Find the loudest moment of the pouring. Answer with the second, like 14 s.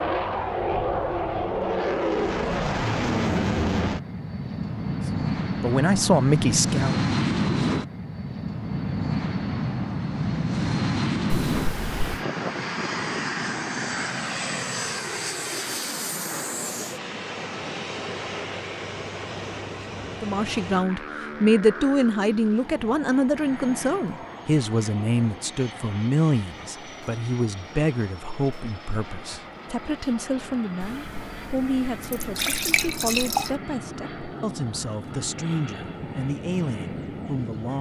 33 s.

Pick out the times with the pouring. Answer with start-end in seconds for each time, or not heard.
11.3-12.2, 30.8-33.5.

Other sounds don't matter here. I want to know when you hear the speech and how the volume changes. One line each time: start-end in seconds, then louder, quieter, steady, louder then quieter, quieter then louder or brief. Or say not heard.
5.6-7.0 brief
20.2-37.7 quieter.